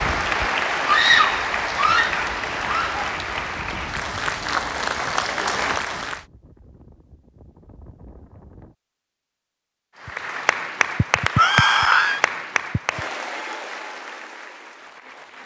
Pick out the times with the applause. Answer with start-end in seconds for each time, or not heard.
0.0-6.2, 10.0-15.4.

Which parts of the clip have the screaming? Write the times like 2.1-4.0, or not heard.
0.8-3.1, 11.3-12.2.